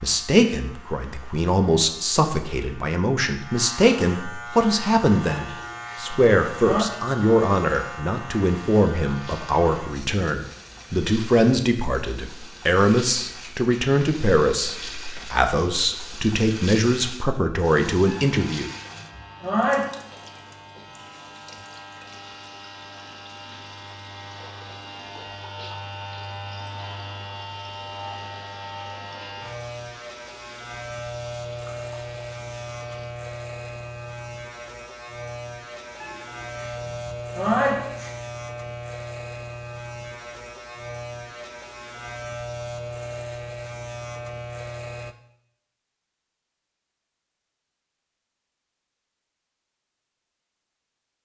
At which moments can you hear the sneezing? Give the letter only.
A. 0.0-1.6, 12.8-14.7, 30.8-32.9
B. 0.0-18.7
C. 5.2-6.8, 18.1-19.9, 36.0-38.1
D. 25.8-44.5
C.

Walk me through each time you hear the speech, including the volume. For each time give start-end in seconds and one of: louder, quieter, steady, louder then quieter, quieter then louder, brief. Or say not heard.
0.0-18.7 steady.